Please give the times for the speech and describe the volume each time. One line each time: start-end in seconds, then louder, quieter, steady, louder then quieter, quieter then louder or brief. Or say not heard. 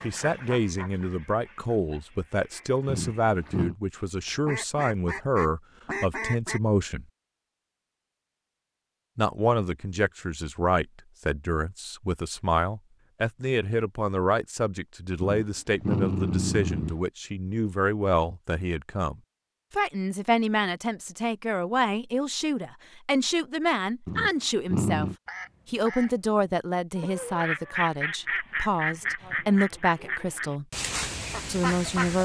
0.0-7.0 steady
9.2-30.6 steady
31.4-32.2 brief.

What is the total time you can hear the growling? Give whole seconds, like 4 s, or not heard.
4 s.